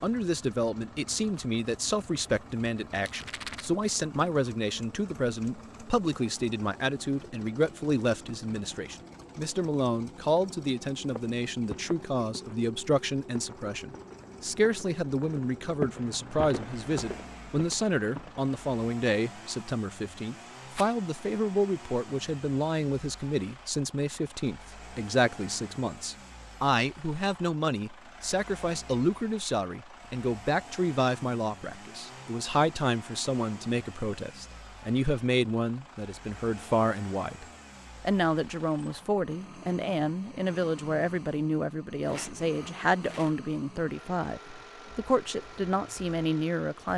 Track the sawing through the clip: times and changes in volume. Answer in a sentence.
The sawing can't be heard in this clip.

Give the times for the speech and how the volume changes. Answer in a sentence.
You can hear the speech from 0.0 to 46.9 s, at a steady volume.